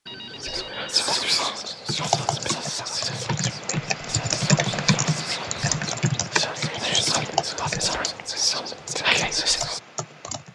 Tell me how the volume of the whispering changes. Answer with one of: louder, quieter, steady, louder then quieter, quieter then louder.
quieter then louder.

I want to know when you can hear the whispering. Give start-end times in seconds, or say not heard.
0.4-9.8.